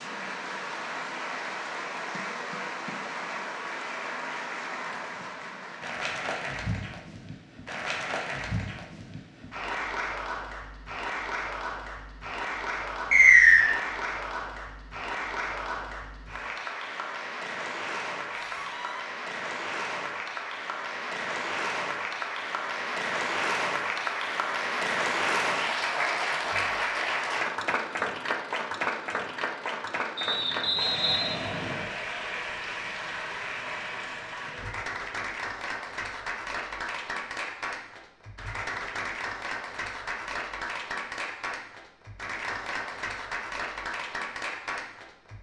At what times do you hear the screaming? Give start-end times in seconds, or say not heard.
18.3-19.1.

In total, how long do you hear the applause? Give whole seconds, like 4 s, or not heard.
45 s.